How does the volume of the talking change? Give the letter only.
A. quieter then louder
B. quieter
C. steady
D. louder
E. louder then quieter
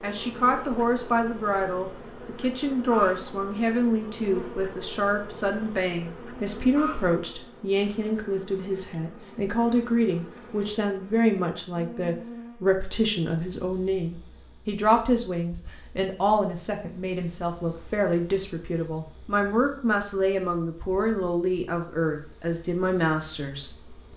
C.